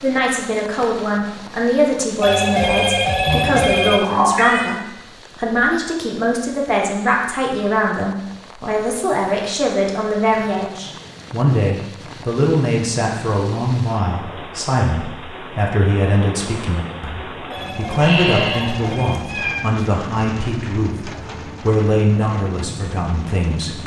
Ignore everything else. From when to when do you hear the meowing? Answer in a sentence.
The meowing can be heard from 3.2 to 4.8 s and from 17.9 to 19.6 s.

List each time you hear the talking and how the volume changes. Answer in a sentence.
You can hear the talking from 0.0 to 23.8 s, at a steady volume.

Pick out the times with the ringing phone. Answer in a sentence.
You can hear the ringing phone from 2.2 to 4.0 s and from 17.5 to 19.2 s.